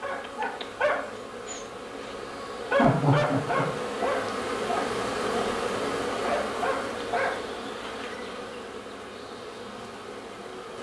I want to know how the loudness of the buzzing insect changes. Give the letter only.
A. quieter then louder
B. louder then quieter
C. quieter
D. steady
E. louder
B.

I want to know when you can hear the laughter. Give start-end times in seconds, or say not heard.
2.7-3.6.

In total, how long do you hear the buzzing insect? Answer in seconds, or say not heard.
11 s.